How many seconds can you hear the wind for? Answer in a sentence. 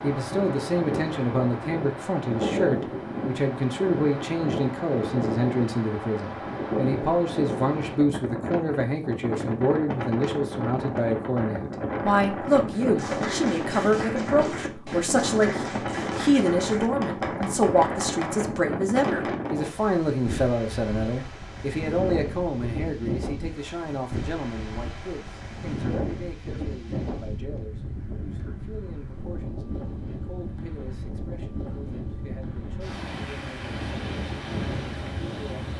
You can hear the wind for 36 seconds altogether.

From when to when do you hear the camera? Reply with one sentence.
The camera can't be heard in this clip.